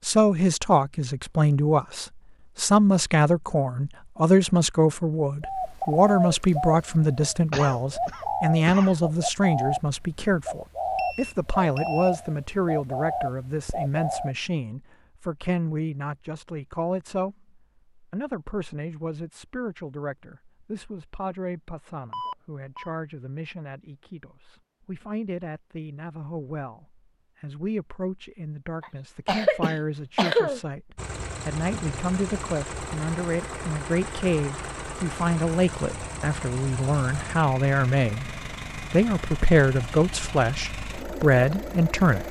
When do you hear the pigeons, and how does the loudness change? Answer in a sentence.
The pigeons can be heard from 5.4 to 14.3 s, at a steady volume.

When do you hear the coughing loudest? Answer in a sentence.
The loudest moment of the coughing is at 30 seconds.